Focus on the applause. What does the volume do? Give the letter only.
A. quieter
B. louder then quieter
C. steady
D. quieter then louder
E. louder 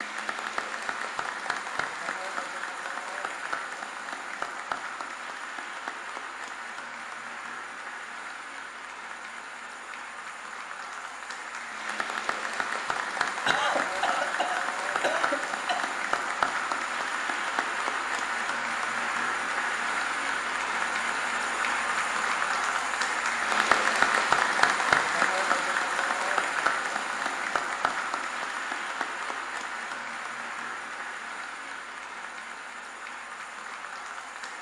B.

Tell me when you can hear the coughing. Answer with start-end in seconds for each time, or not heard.
13.4-15.9.